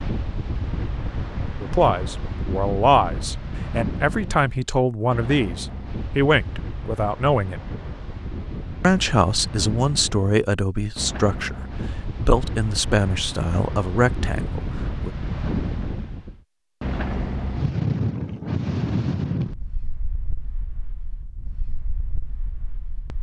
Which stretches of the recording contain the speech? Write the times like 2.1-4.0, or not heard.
1.6-7.6, 8.8-15.1.